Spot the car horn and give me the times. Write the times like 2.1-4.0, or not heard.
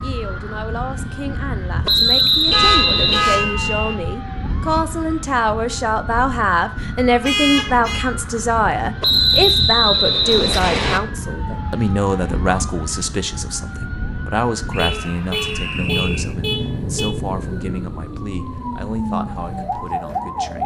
2.5-4.0, 7.2-8.1, 14.8-17.1.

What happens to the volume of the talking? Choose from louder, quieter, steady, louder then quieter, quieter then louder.
louder then quieter.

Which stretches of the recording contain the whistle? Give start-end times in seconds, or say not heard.
1.9-3.2, 9.0-11.0, 14.7-16.4.